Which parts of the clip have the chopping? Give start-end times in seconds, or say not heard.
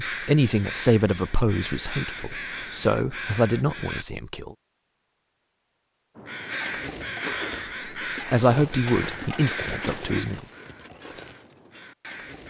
not heard.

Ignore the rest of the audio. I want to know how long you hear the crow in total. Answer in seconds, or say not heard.
10 s.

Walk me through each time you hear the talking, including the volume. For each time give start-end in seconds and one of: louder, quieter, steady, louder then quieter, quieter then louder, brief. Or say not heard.
0.1-4.5 quieter then louder
8.2-10.4 brief.